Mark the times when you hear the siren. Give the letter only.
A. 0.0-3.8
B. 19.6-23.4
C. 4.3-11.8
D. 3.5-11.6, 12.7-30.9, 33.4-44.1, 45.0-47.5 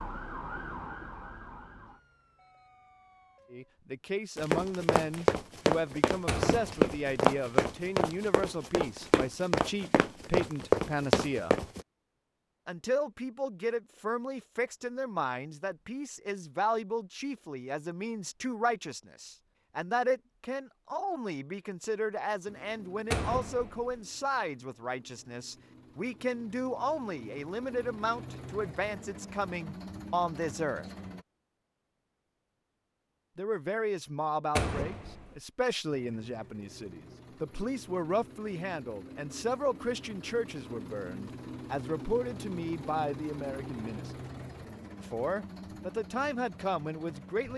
A.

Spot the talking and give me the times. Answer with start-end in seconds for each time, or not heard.
3.5-11.6, 12.7-30.9, 33.4-44.1, 45.0-47.5.